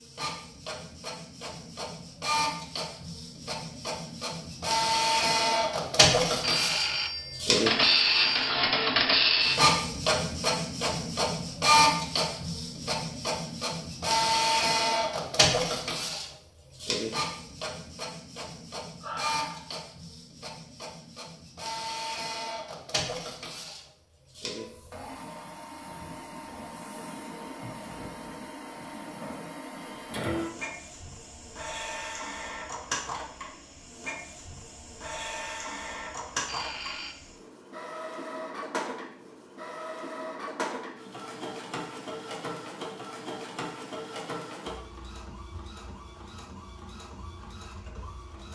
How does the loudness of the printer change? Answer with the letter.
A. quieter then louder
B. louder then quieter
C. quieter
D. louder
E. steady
C.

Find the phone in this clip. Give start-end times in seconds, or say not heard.
6.4-8.6, 36.5-37.1.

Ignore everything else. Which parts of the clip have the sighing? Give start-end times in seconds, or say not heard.
19.0-19.7.